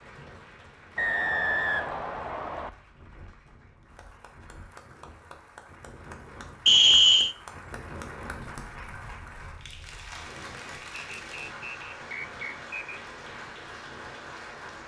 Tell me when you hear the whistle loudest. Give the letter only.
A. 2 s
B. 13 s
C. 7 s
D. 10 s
C.